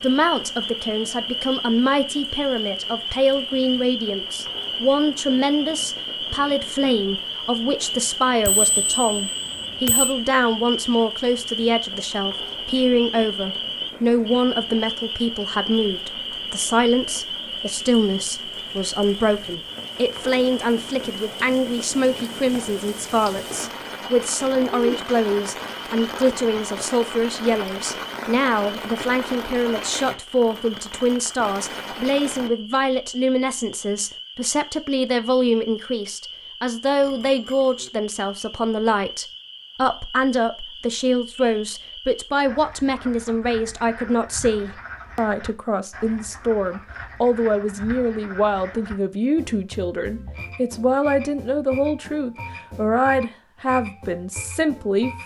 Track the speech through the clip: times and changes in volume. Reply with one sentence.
You can hear the speech from 0.0 to 55.2 s, at a steady volume.